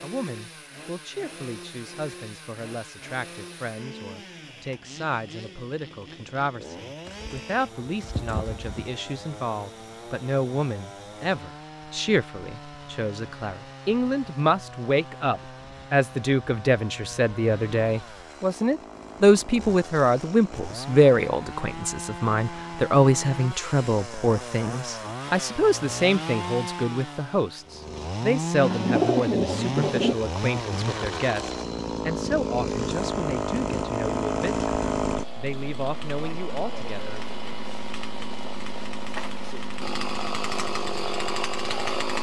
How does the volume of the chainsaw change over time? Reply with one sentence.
The volume of the chainsaw goes up.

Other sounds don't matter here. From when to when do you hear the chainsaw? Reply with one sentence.
The chainsaw can be heard from 0.0 to 42.1 s.